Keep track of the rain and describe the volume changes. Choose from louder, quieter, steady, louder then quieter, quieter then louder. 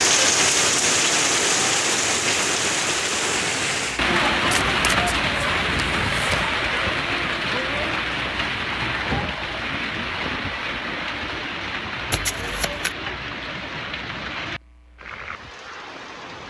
quieter.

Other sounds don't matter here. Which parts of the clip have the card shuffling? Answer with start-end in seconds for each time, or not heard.
4.5-6.5, 12.1-12.9.